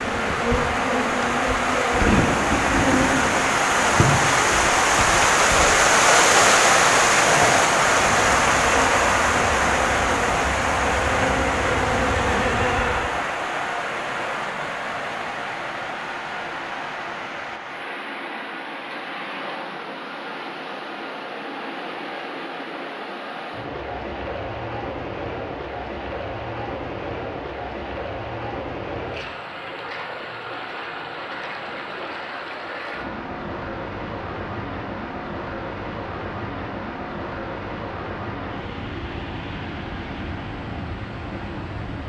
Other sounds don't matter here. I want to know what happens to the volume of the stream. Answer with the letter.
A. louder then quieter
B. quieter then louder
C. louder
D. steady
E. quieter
E.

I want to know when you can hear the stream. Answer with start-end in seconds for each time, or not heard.
0.0-42.0.